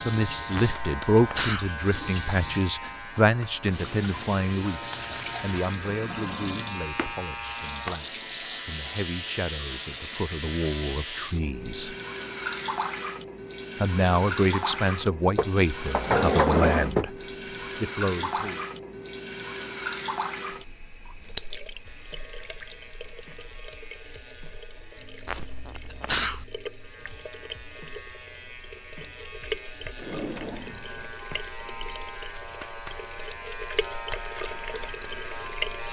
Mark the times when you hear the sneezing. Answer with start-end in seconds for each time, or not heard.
0.5-1.7, 25.2-26.4.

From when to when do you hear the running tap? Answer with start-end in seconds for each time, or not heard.
0.0-35.8.